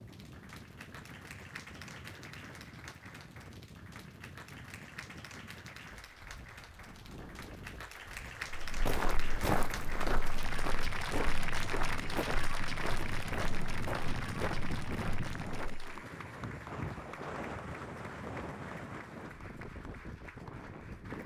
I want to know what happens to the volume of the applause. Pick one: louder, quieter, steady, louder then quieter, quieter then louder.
louder then quieter.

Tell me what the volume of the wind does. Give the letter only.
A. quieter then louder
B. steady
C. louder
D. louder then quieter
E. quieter
C.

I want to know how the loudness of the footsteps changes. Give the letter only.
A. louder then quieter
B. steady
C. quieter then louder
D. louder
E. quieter
E.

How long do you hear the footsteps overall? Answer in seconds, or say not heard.
7 s.